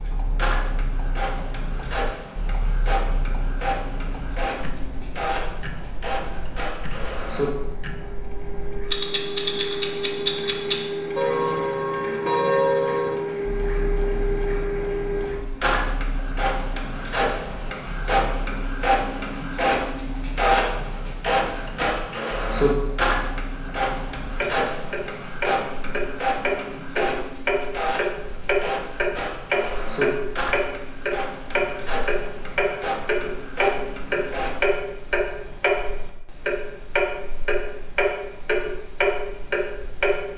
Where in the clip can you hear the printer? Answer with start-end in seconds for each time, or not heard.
0.0-34.6.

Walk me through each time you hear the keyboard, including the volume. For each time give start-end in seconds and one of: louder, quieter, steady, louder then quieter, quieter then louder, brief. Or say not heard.
not heard.